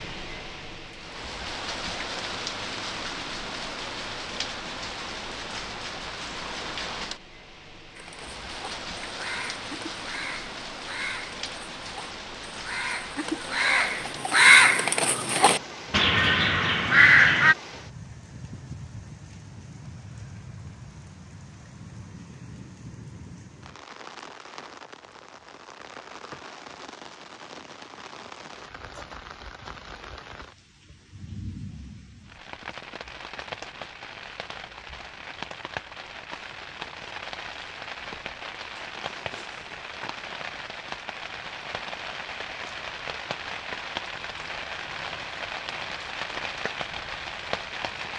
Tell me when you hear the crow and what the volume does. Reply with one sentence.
You can hear the crow from 8.0 to 17.6 s, getting louder.